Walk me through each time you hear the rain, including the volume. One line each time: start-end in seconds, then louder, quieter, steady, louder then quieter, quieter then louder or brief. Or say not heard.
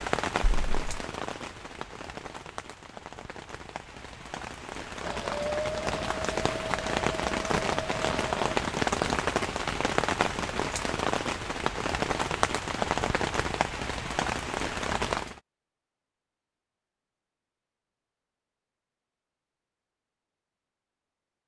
0.0-15.4 louder.